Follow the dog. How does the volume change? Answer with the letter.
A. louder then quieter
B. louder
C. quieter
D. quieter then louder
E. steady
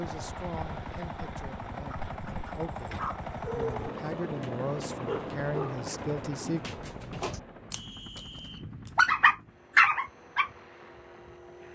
D.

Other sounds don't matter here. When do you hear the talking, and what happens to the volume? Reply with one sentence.
The talking can be heard from 0.0 to 6.8 s, getting louder.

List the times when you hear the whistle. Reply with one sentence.
The whistle can be heard from 7.7 to 8.7 s.